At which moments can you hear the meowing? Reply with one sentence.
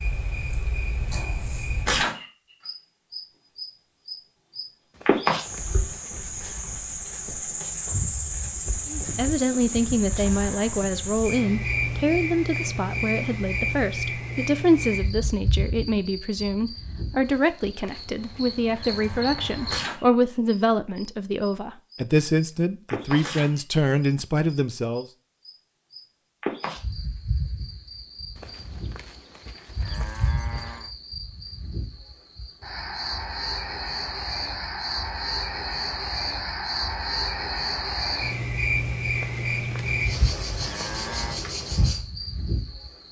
The meowing can't be heard in this clip.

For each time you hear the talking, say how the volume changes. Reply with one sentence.
You can hear the talking from 8.8 to 25.1 s, at a steady volume.